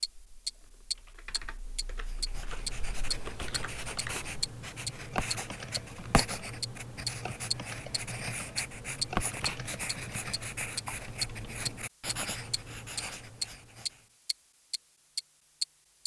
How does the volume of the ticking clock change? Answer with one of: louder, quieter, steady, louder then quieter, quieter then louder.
steady.